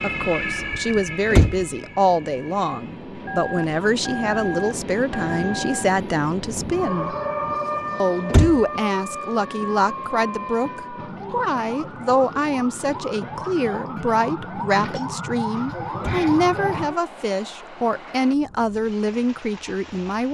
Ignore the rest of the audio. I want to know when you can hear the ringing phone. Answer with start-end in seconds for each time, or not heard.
3.2-5.9.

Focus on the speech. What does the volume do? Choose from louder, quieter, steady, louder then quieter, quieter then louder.
steady.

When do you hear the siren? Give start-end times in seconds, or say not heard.
0.0-3.0, 6.7-17.1.